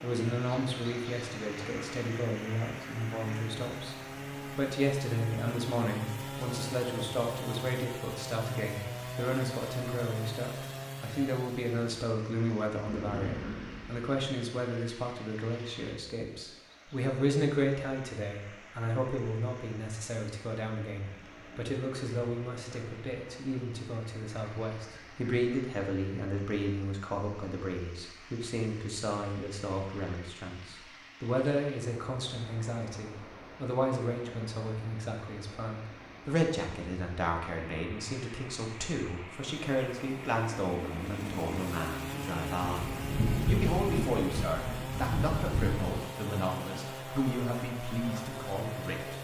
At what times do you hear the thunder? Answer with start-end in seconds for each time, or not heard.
12.8-14.1, 42.6-46.0.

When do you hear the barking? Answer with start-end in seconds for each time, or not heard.
not heard.